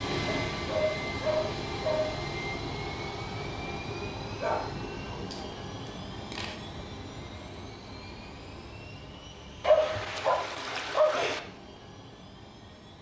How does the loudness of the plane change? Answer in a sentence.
The volume of the plane goes down.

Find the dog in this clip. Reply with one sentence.
You can hear the dog from 0.2 to 2.2 s, from 4.4 to 6.5 s and from 9.6 to 11.4 s.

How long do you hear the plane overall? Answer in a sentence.
The plane can be heard for 13 seconds in total.